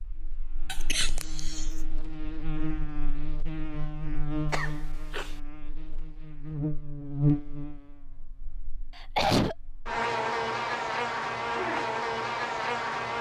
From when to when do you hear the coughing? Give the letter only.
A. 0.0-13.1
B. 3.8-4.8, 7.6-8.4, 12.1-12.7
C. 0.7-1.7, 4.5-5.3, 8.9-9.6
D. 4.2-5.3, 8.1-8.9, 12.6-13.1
C.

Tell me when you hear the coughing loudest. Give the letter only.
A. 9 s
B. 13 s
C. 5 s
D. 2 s
A.